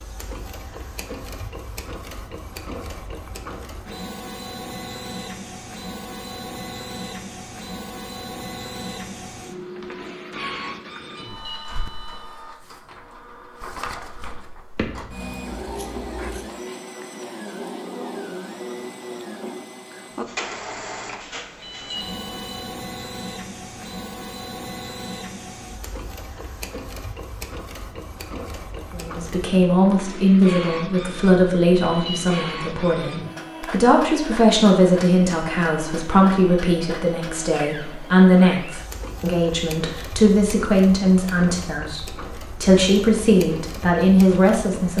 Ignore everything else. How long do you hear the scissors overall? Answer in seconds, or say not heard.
2 s.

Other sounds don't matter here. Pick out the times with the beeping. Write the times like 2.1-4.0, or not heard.
11.2-12.2, 21.6-22.7, 31.8-32.5.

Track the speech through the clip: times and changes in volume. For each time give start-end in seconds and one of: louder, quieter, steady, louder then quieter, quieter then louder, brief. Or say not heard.
28.9-44.9 steady.